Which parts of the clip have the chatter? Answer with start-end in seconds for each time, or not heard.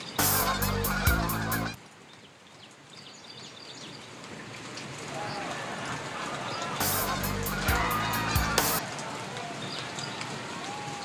5.0-11.0.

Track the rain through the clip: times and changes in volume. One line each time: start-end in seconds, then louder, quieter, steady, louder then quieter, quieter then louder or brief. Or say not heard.
0.0-11.0 louder.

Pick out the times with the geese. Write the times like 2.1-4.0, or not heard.
0.1-1.8, 6.8-8.8.